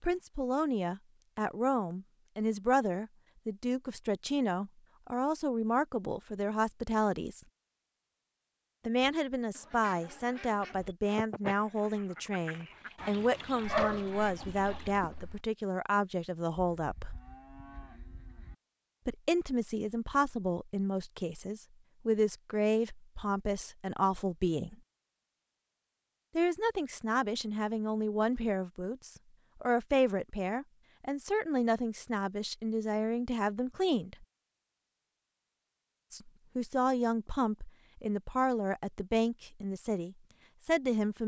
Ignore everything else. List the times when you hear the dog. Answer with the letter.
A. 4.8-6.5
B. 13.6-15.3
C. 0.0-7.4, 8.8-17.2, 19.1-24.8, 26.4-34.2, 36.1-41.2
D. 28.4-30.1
B.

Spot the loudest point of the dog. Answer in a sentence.
The loudest moment of the dog is at 14 seconds.